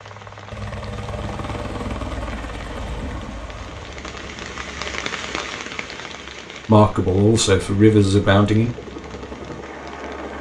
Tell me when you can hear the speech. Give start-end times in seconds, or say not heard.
6.7-8.7.